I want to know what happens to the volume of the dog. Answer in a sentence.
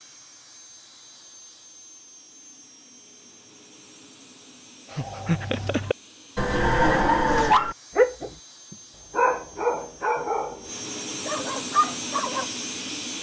The loudness of the dog goes up, then down.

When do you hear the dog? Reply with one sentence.
The dog can be heard from 5.0 to 12.4 s.